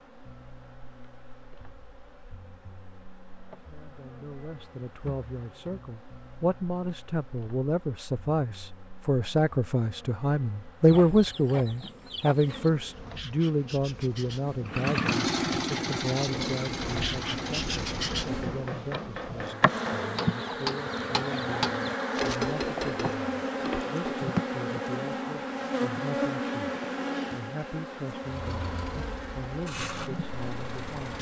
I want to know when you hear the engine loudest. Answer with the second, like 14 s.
15 s.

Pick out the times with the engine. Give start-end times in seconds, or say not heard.
14.7-18.4, 28.2-31.1.